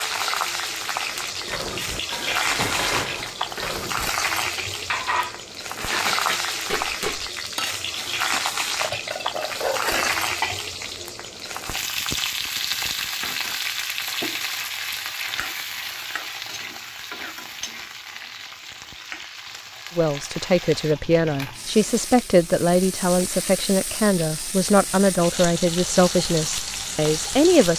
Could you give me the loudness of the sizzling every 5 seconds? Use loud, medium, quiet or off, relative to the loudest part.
loud, loud, loud, medium, medium, loud.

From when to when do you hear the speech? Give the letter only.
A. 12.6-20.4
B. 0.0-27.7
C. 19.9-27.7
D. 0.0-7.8
C.